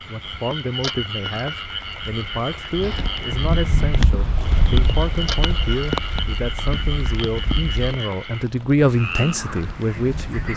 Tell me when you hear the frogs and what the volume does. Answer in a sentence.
You can hear the frogs from 0.0 to 10.5 s, at a steady volume.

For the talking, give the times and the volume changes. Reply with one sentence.
The talking can be heard from 0.1 to 10.5 s, getting louder.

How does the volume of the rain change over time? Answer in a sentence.
The volume of the rain goes up, then down.